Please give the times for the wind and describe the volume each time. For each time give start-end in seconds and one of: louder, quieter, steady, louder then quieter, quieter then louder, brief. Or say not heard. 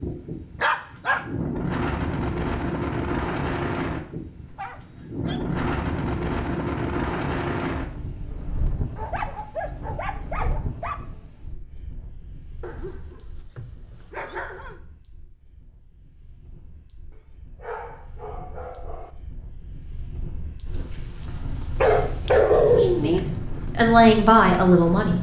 0.0-25.1 quieter then louder.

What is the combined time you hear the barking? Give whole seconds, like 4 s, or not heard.
9 s.